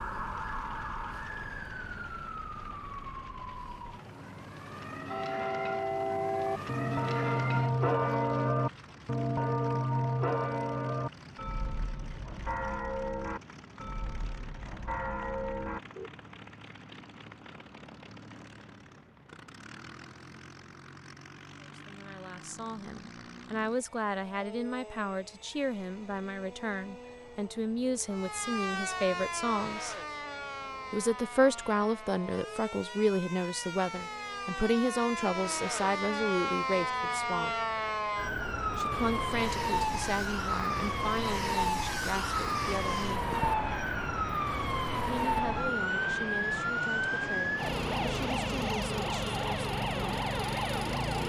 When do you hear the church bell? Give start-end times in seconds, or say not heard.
5.0-16.1.